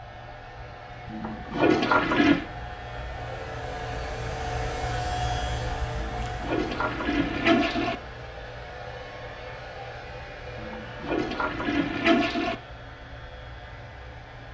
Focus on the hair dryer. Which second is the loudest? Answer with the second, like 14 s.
5 s.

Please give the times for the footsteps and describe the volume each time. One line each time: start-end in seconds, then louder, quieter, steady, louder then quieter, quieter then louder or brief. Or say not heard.
not heard.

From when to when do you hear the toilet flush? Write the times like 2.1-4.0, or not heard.
1.1-2.5, 6.0-8.0, 10.6-12.6.